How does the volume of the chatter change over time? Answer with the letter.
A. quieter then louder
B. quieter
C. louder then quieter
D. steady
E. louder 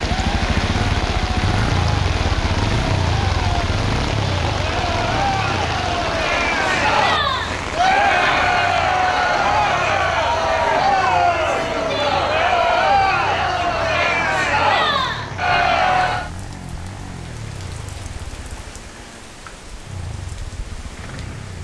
E.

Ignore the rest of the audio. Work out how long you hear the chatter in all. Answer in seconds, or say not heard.
16 s.